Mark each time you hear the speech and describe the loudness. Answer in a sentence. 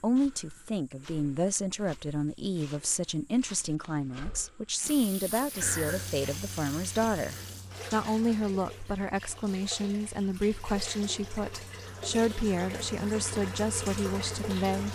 The speech can be heard from 0.0 to 14.8 s, at a steady volume.